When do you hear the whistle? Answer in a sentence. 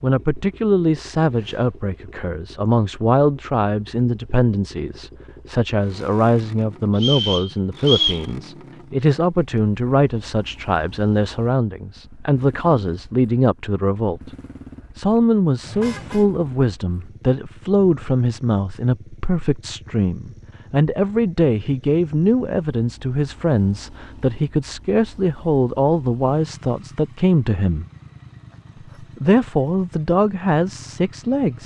The whistle can be heard from 7.0 to 8.2 s.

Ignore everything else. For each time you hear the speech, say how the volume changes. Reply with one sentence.
You can hear the speech from 0.0 to 14.3 s, at a steady volume; from 14.9 to 27.9 s, at a steady volume; and briefly from 29.0 to 31.6 s.